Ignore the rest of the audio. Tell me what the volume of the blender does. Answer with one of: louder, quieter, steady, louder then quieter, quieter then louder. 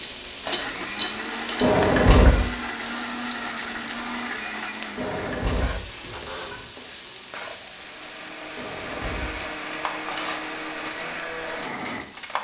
quieter then louder.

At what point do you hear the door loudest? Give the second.
2 s.